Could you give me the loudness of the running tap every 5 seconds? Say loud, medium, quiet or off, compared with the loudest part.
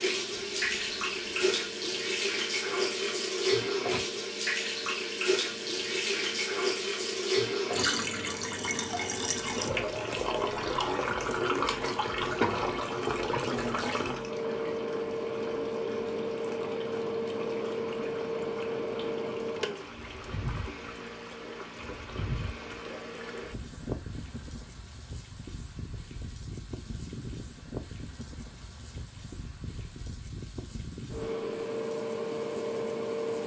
loud, loud, loud, quiet, quiet, quiet, quiet.